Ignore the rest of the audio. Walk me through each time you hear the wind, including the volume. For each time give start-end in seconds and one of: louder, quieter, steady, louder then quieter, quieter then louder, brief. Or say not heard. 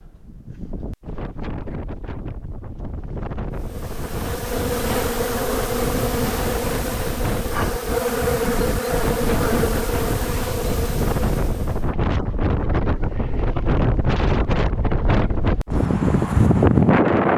0.0-17.3 louder.